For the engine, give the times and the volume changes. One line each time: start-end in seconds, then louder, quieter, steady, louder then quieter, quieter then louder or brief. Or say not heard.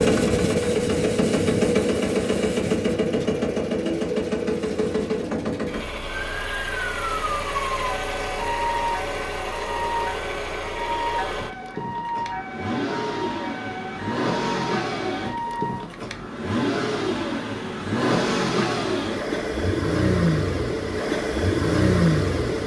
0.0-22.6 quieter then louder.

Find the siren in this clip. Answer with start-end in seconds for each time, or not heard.
6.2-15.8.